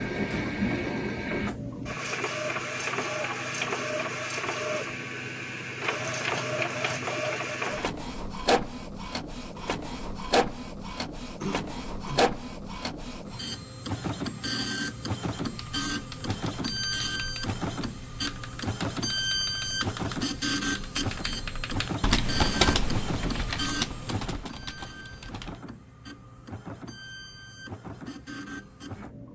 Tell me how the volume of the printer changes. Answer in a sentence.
The volume of the printer goes down.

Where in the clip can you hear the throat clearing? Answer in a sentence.
You can hear the throat clearing from 11.4 to 12.2 s.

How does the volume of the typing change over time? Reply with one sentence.
The volume of the typing goes up, then down.